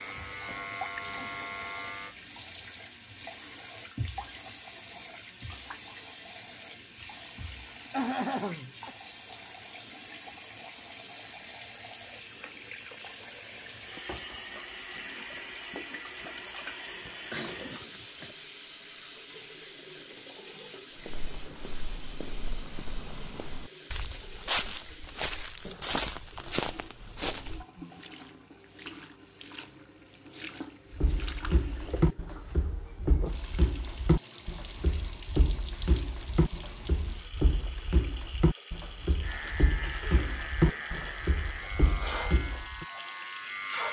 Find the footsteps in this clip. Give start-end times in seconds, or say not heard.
20.9-27.6, 30.9-42.9.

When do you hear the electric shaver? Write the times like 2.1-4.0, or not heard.
0.0-2.1, 39.2-43.8.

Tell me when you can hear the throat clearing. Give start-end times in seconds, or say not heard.
7.9-8.9, 17.3-18.4, 40.0-40.5.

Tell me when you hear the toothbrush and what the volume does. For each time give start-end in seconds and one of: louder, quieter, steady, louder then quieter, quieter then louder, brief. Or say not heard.
not heard.